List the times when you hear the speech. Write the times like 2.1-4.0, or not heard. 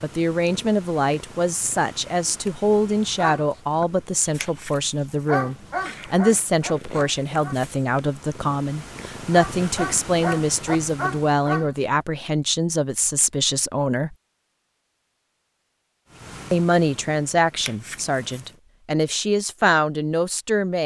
0.0-14.2, 16.5-20.8.